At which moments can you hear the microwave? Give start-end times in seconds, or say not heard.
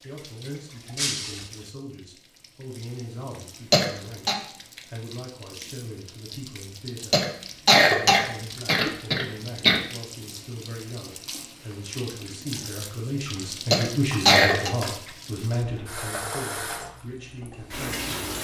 not heard.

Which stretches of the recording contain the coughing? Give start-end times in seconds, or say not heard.
3.7-4.3, 7.1-9.8, 13.7-14.7.